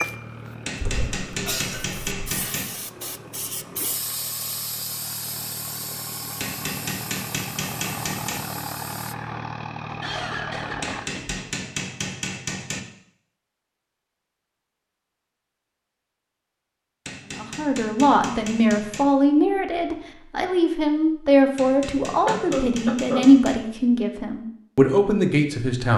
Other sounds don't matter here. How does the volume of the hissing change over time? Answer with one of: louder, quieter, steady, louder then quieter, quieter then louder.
louder then quieter.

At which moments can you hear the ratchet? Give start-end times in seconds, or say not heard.
not heard.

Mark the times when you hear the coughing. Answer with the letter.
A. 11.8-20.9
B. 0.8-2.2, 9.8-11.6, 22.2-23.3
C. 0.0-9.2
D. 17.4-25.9
B.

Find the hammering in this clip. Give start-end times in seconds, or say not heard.
0.7-2.6, 6.4-8.4, 10.8-12.8, 17.1-19.1, 21.6-23.6.